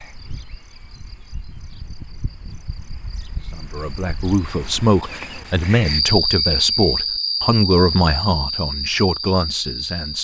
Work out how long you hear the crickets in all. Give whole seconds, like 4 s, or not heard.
10 s.